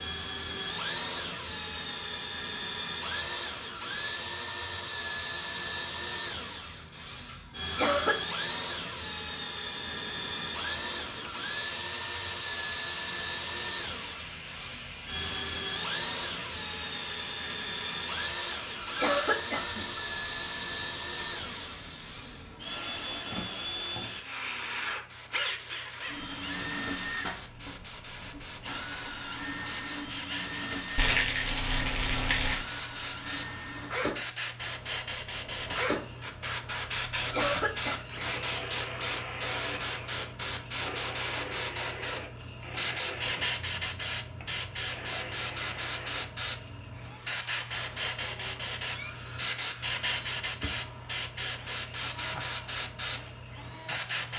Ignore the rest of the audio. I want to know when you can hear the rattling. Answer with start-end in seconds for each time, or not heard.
30.9-32.6.